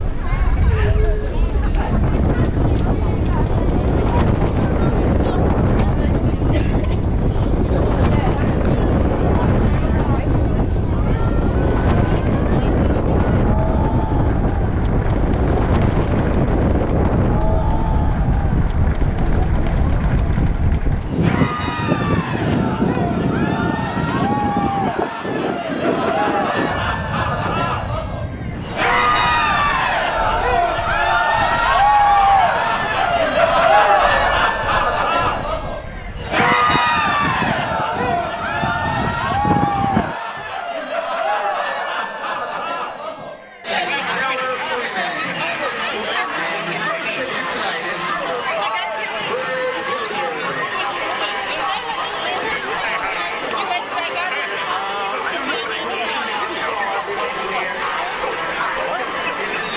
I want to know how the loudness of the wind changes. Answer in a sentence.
The loudness of the wind goes down.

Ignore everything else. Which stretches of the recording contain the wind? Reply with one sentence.
The wind can be heard from 0.0 to 40.1 s.